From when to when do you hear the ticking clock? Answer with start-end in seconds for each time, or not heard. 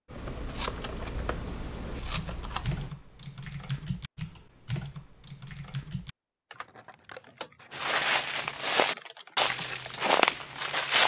not heard.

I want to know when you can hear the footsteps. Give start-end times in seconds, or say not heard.
7.7-11.0.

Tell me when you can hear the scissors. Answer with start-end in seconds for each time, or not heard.
0.1-3.0, 6.5-7.9.